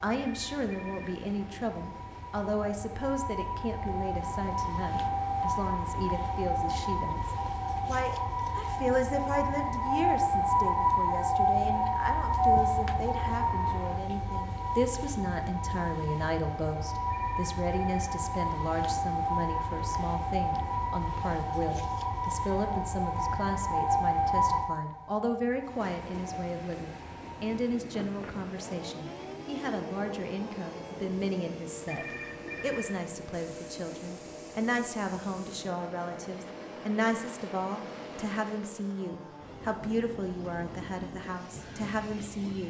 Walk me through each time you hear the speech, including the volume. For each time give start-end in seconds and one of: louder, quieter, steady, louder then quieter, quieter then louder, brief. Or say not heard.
0.0-42.6 steady.